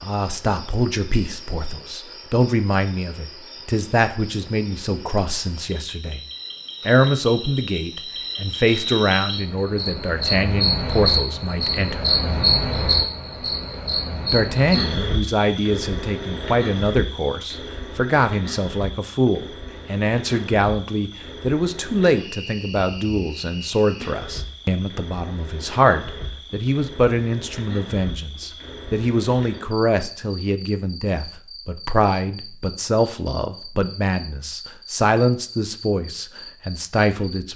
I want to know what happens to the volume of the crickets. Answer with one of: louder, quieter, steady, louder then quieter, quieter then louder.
louder then quieter.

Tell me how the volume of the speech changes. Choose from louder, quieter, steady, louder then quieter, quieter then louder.
steady.